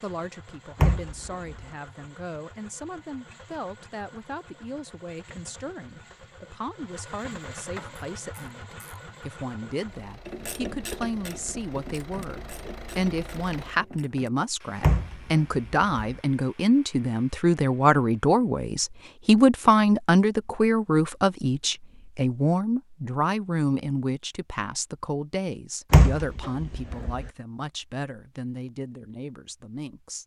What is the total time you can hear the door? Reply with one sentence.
You can hear the door for 4 seconds altogether.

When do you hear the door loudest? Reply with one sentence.
The loudest moment of the door is at 26 seconds.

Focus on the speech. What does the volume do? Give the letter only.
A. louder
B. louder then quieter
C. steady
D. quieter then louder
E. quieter
B.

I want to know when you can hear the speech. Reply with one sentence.
You can hear the speech from 0.0 to 30.2 s.